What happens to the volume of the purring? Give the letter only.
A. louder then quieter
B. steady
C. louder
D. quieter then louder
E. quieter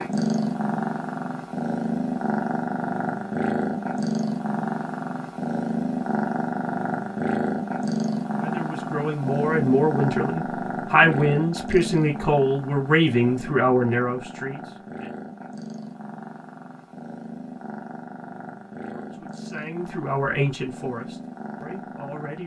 E.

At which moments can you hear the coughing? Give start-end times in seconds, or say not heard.
not heard.